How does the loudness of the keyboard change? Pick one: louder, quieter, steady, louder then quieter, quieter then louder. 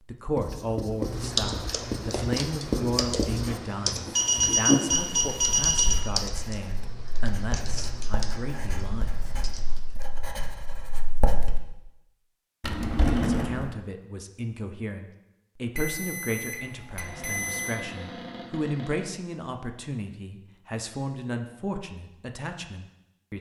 quieter.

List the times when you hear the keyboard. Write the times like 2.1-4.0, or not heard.
1.0-10.1.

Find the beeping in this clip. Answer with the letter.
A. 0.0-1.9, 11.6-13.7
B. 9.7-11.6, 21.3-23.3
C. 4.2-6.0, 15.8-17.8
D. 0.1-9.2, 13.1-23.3
C.